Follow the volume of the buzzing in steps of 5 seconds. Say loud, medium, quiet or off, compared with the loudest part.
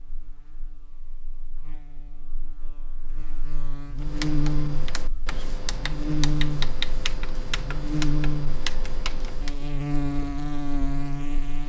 medium, loud, loud.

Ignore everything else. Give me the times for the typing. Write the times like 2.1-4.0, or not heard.
4.0-9.6.